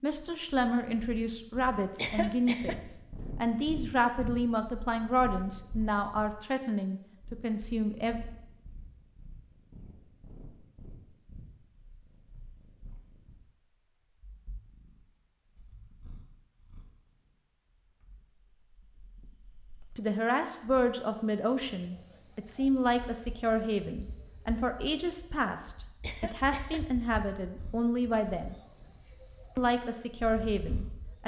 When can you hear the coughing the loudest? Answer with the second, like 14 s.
2 s.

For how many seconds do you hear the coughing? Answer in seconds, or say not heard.
2 s.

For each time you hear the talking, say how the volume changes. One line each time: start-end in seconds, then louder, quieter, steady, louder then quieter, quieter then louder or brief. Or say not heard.
0.0-8.2 steady
19.9-28.6 steady
29.6-31.2 brief.